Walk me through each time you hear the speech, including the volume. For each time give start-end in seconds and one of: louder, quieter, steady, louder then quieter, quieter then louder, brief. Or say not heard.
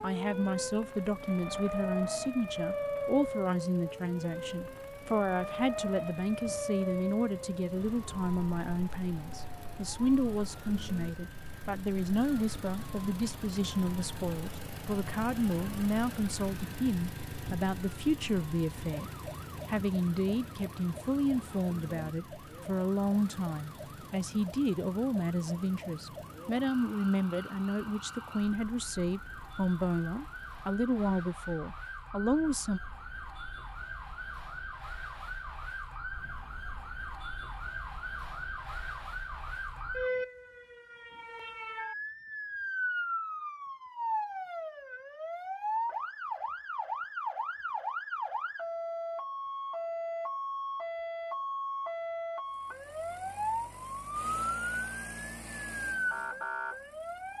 0.0-32.8 steady.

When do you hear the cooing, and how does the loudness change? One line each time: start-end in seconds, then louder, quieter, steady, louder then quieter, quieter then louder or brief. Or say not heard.
not heard.